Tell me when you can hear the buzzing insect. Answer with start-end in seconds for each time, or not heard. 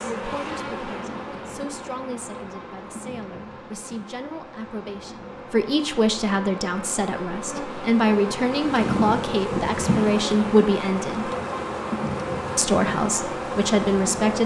0.0-14.4.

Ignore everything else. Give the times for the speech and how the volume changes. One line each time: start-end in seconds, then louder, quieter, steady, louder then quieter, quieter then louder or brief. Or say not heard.
0.0-11.3 louder
12.6-14.4 brief.